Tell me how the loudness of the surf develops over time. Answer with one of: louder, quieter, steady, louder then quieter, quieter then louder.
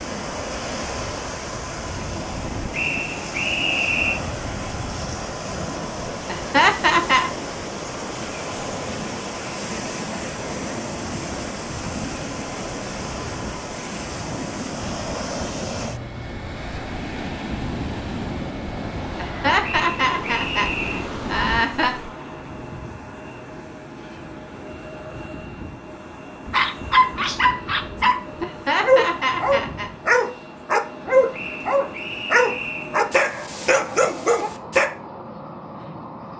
steady.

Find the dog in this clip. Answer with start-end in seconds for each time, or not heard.
26.4-34.9.